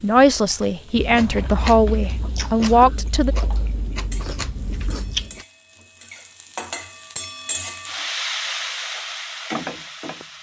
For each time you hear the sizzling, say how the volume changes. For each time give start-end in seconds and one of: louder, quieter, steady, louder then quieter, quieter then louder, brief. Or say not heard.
0.0-10.3 louder.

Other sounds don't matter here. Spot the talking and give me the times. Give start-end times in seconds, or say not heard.
0.0-3.4.